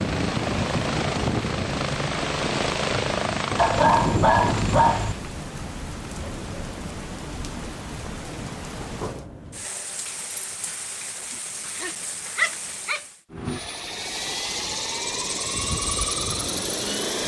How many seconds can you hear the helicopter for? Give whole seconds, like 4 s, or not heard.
9 s.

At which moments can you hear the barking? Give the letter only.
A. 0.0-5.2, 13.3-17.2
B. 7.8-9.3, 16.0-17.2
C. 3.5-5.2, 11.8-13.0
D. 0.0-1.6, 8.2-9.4
C.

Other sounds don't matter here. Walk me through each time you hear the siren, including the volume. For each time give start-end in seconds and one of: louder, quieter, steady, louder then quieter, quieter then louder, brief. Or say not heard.
not heard.